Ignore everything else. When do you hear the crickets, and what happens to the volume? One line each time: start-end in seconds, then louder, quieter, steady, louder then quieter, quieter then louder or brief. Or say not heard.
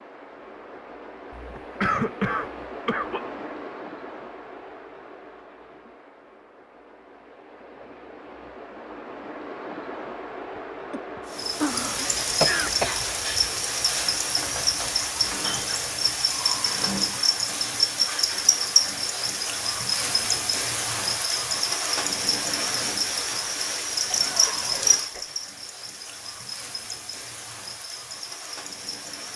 11.3-29.3 quieter.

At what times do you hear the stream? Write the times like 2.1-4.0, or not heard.
0.0-16.2.